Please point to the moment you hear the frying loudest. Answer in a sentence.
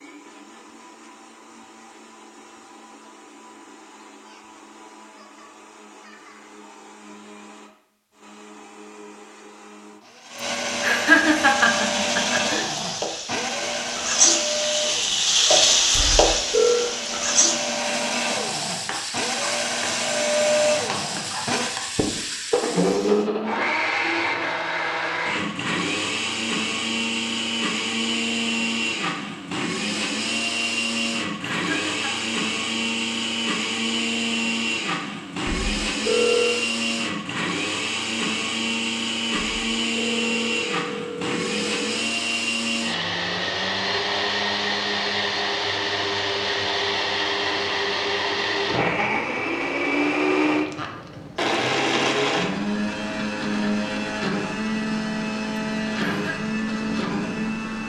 The volume of the frying peaks at 16 seconds.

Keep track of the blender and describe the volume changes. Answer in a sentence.
The loudness of the blender goes up.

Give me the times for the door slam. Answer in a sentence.
You can't hear the door slam here.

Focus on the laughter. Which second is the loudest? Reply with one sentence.
The volume of the laughter peaks at 11 seconds.